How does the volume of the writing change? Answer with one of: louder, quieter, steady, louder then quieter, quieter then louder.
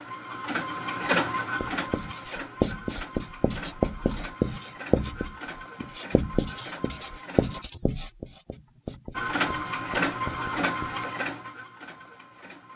quieter.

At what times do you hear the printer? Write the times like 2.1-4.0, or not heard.
0.0-7.7, 9.2-12.7.